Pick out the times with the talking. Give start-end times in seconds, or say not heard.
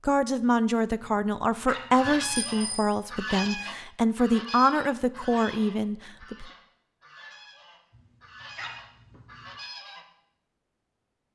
0.1-6.5.